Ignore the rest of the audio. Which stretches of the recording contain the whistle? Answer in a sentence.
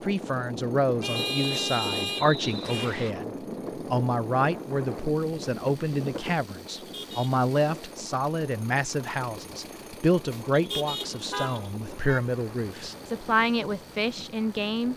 You can hear the whistle from 1.2 to 3.1 s.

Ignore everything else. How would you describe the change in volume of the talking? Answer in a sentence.
The loudness of the talking stays about the same.